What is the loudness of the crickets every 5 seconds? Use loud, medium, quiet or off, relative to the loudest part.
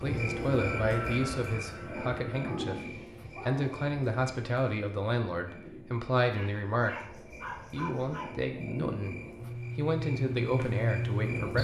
medium, medium, loud.